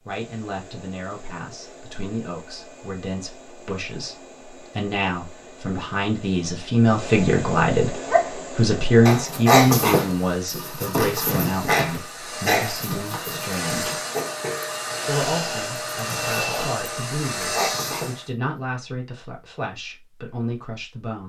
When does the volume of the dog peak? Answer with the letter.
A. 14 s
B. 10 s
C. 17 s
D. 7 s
B.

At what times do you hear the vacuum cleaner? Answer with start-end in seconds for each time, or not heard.
0.0-18.3.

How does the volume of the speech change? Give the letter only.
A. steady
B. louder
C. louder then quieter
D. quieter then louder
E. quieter
C.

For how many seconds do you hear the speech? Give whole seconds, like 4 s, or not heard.
20 s.